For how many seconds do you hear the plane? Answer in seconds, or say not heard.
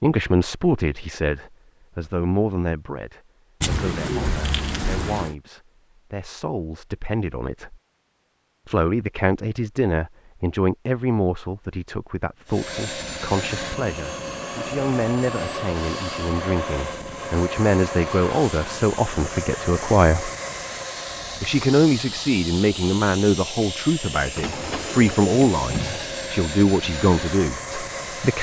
16 s.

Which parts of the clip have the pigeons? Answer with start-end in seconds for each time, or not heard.
3.6-5.3, 24.4-26.1.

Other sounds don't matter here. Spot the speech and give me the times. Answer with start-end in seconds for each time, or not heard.
0.0-7.8, 8.7-20.3, 21.4-28.3.